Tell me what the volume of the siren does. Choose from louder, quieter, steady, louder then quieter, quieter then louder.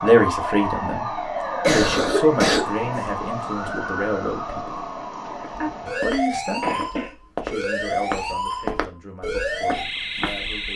steady.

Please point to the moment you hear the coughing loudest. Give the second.
2 s.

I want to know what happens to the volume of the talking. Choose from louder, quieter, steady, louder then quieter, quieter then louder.
quieter.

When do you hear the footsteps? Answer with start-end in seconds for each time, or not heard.
5.3-10.7.